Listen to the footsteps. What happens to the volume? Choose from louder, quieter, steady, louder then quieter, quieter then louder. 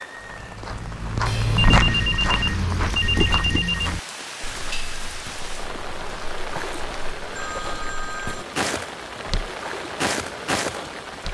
quieter then louder.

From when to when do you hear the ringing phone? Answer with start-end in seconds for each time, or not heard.
1.2-3.9, 7.3-8.4.